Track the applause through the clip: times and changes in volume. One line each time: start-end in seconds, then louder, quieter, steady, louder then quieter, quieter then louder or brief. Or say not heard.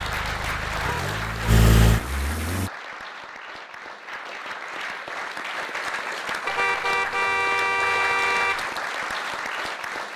0.0-10.1 quieter then louder.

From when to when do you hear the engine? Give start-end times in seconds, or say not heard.
0.0-2.7.